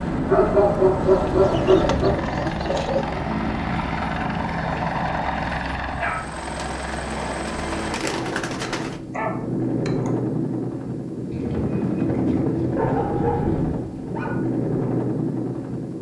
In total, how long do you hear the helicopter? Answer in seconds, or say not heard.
16 s.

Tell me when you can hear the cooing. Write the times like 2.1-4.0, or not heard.
1.0-3.0, 6.5-9.0, 11.3-13.8.